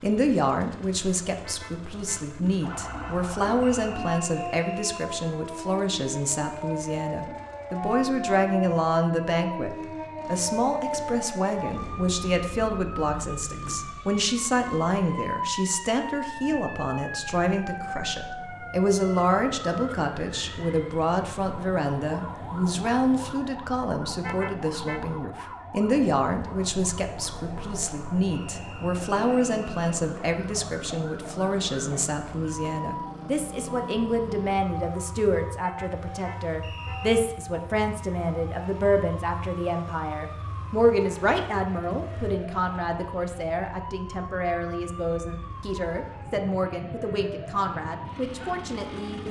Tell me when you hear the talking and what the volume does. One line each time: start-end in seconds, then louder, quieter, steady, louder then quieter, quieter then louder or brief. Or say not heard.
0.0-49.2 steady.